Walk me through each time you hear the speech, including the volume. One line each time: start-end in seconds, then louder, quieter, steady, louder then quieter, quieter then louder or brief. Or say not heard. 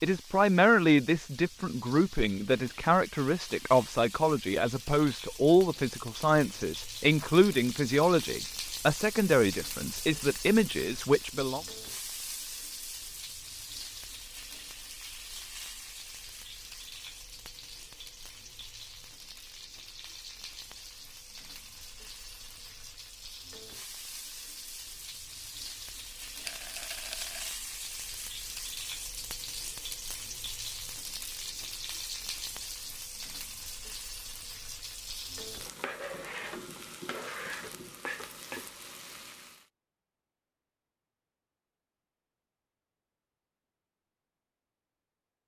0.0-11.6 steady.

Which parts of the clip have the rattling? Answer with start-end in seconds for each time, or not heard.
26.4-27.5.